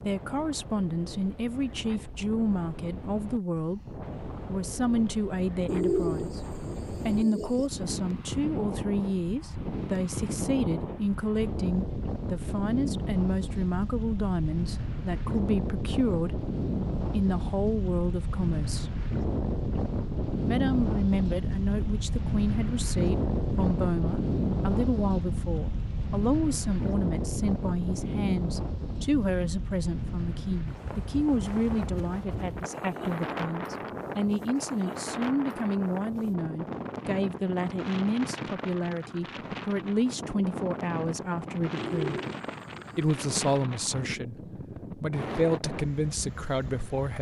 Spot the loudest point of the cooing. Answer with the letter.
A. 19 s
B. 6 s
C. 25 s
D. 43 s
B.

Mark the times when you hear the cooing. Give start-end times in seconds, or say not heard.
5.7-7.7, 41.8-43.5.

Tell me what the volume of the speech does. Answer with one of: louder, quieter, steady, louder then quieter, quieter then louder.
steady.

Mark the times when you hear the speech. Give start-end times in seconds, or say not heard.
0.0-6.4, 7.0-19.1, 20.4-42.1, 43.0-47.1.